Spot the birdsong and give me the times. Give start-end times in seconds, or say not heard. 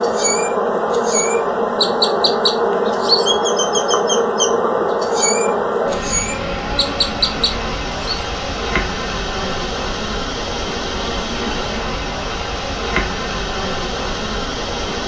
0.0-8.2.